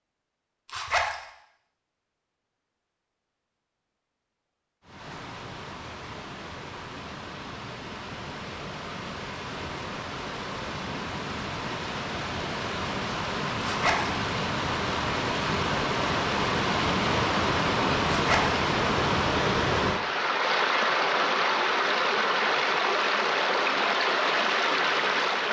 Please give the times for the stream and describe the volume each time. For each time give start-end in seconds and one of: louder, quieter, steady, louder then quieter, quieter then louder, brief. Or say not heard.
4.8-25.4 louder.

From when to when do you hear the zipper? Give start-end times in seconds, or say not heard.
0.7-1.2, 13.6-14.1, 18.1-18.6.